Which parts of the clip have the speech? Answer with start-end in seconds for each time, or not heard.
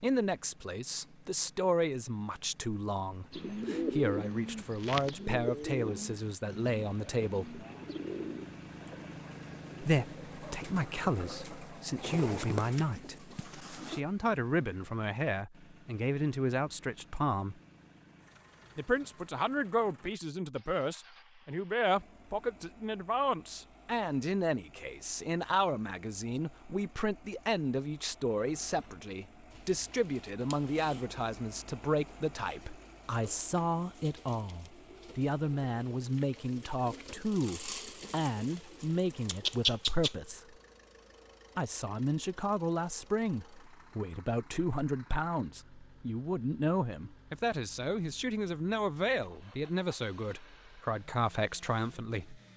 0.0-7.7, 9.8-17.6, 18.8-40.4, 41.5-52.4.